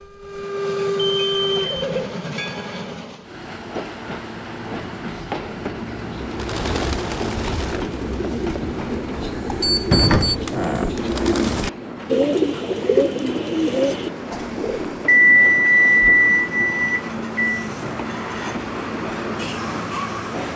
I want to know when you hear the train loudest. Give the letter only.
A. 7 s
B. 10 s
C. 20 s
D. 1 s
D.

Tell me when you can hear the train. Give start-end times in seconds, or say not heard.
0.0-20.5.